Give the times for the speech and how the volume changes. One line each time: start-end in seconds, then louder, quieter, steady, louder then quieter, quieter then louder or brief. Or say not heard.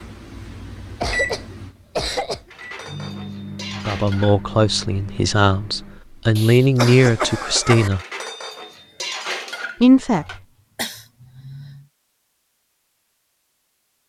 3.8-8.0 quieter then louder
9.8-10.2 brief.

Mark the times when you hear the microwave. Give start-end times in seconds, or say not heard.
0.0-6.4.